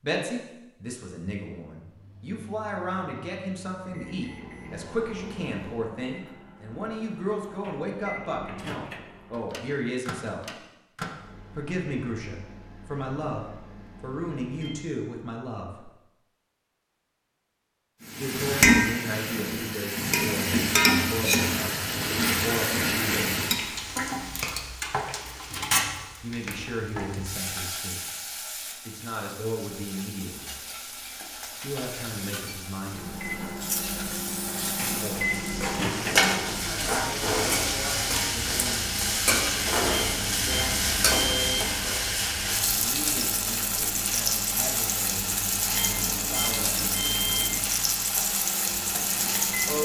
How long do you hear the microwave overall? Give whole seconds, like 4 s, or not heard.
30 s.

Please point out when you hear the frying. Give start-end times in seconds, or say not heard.
18.0-49.8.